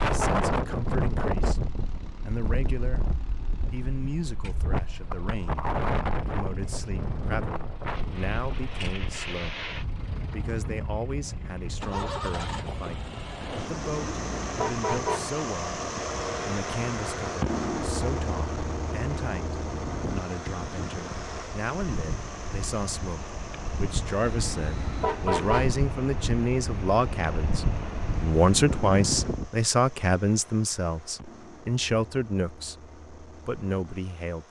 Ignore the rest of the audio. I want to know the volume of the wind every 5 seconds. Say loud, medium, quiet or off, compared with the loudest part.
loud, loud, medium, medium, medium, loud, off.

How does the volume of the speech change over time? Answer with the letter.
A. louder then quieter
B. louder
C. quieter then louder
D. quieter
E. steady
B.